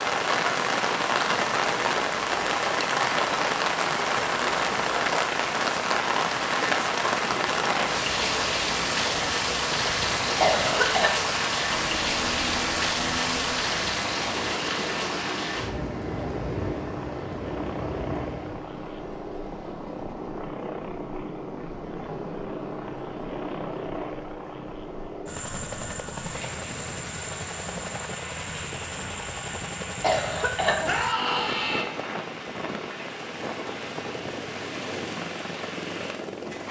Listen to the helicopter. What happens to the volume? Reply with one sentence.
The volume of the helicopter stays about the same.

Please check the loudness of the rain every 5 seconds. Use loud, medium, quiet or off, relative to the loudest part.
loud, loud, loud, medium, quiet, quiet, quiet, quiet.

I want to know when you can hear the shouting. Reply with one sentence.
You can hear the shouting from 30.9 to 31.9 s.